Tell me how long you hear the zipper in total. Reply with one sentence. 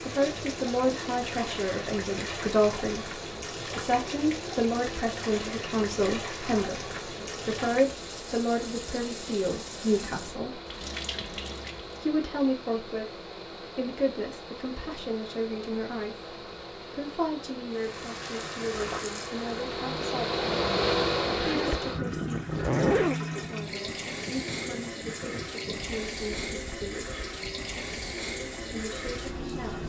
You can hear the zipper for 2 seconds altogether.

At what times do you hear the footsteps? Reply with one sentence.
The footsteps can't be heard in this clip.